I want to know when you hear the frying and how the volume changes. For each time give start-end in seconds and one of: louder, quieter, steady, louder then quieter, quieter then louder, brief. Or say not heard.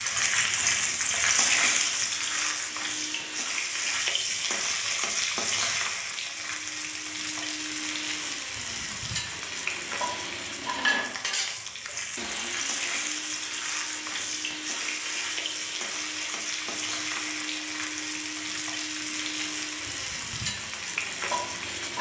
0.0-21.9 quieter.